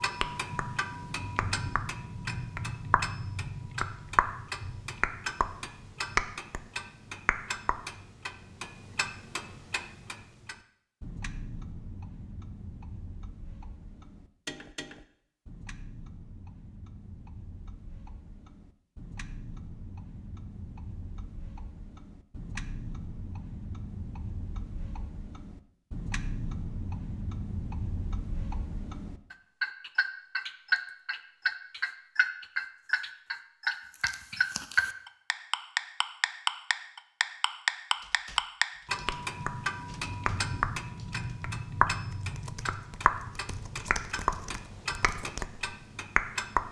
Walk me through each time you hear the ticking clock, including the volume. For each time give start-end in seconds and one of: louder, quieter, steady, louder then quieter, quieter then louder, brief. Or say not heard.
0.0-46.6 quieter then louder.